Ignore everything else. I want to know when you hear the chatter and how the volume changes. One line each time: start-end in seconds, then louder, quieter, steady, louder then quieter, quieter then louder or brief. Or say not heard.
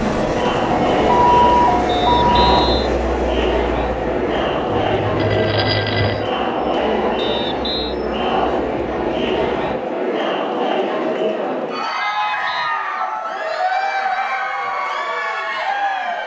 0.0-16.2 steady.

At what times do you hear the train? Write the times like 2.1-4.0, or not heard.
0.0-9.8.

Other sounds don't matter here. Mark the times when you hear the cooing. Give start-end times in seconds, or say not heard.
not heard.